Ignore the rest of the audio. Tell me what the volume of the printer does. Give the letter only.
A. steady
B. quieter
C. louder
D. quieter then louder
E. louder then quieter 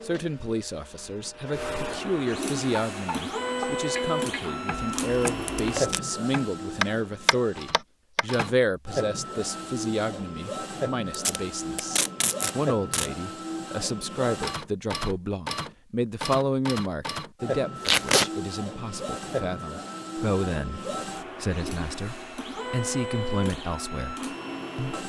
A.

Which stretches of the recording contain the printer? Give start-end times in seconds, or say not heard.
0.0-25.0.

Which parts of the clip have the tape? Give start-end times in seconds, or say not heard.
4.8-6.0, 11.1-13.1, 17.9-18.3.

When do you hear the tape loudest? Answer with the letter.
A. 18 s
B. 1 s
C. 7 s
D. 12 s
A.